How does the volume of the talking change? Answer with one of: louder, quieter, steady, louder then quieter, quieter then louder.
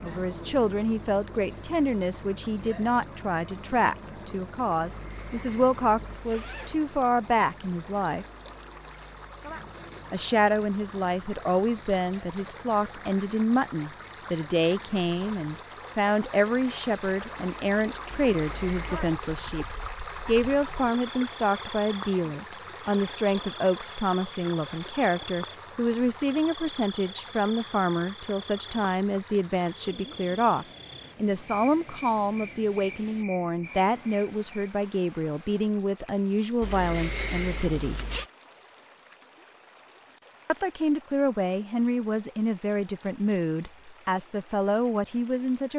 steady.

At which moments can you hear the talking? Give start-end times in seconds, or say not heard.
0.0-8.2, 10.1-19.6, 20.2-38.0, 40.5-45.7.